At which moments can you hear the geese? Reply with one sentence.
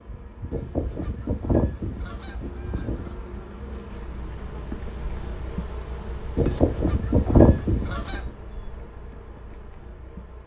You can hear the geese from 0.5 to 3.1 s and from 6.3 to 8.3 s.